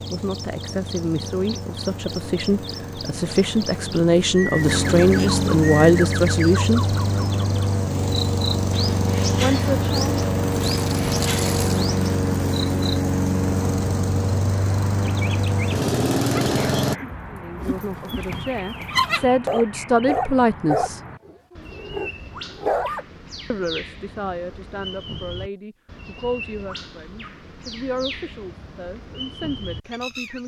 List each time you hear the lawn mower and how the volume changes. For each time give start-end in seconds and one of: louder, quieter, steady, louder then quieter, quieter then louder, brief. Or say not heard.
0.0-17.0 louder.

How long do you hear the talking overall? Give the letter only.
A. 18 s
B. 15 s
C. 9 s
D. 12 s
A.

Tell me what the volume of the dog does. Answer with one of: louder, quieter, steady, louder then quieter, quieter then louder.
louder then quieter.